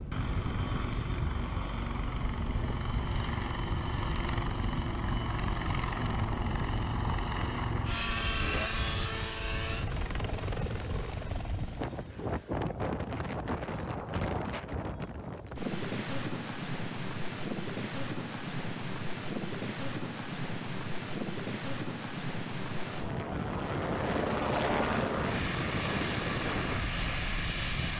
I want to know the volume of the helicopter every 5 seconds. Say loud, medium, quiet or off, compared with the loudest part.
loud, loud, medium, off, loud, loud.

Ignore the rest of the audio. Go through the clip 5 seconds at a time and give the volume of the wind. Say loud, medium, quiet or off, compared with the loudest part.
medium, medium, loud, loud, loud, loud.